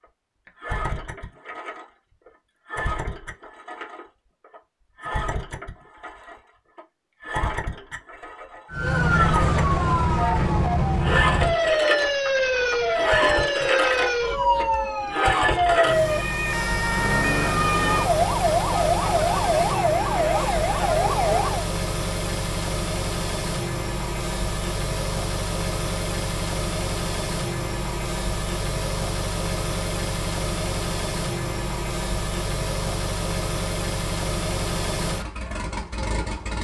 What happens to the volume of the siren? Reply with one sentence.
The volume of the siren stays about the same.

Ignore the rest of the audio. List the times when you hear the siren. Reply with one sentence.
You can hear the siren from 8.7 to 21.7 s.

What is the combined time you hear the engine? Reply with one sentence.
The engine can be heard for 36 seconds in total.